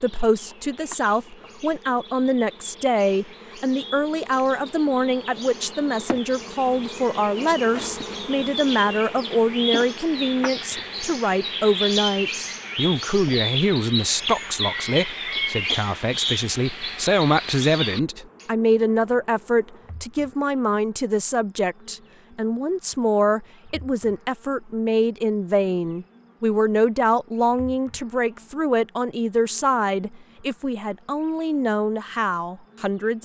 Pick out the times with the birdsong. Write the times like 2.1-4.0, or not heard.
0.0-18.4.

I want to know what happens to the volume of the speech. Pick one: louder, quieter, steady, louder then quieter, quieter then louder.
steady.